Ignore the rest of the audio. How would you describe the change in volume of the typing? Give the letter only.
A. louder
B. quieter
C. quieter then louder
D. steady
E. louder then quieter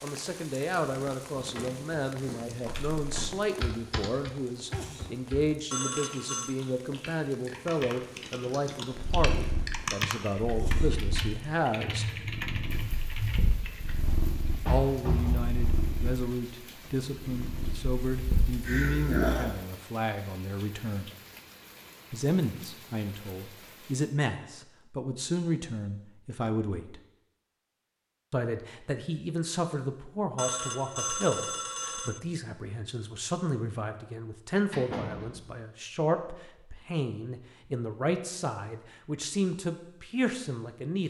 C.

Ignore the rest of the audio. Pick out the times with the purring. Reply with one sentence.
The purring can be heard from 8.9 to 19.6 s.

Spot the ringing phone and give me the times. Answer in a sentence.
You can hear the ringing phone from 5.7 to 6.5 s and from 30.4 to 32.2 s.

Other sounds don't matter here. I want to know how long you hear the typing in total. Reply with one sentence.
You can hear the typing for 11 seconds altogether.